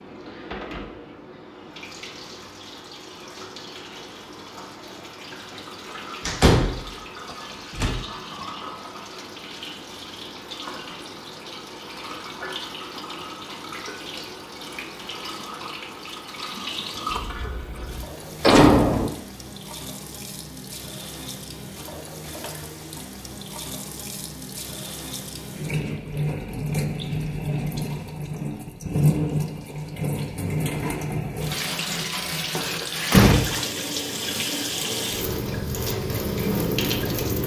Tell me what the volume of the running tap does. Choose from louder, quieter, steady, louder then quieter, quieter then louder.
louder.